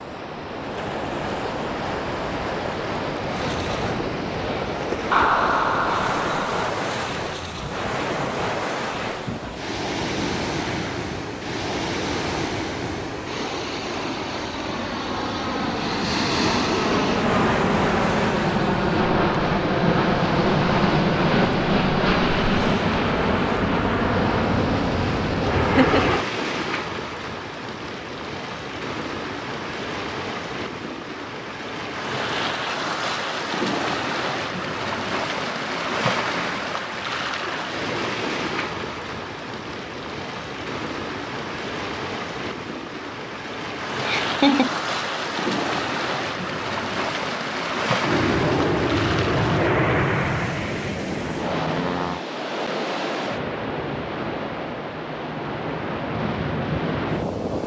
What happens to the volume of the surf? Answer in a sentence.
The volume of the surf stays about the same.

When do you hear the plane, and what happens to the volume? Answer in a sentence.
You can hear the plane from 3.2 to 26.2 s, getting louder; and from 48.0 to 52.2 s, getting quieter.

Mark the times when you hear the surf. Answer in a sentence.
The surf can be heard from 0.0 to 57.6 s.